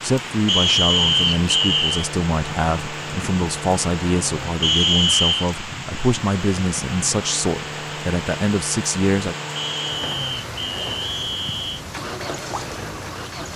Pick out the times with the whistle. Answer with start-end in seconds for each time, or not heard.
0.5-1.9, 4.6-5.5, 9.6-11.8.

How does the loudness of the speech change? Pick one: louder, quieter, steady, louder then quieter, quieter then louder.
steady.